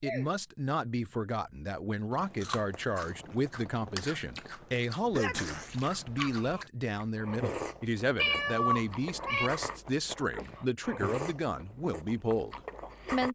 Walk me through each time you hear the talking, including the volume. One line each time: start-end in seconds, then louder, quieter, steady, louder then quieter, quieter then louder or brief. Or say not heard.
0.0-13.3 steady.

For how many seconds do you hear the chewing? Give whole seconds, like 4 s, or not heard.
11 s.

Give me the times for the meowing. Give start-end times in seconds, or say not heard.
8.2-9.5.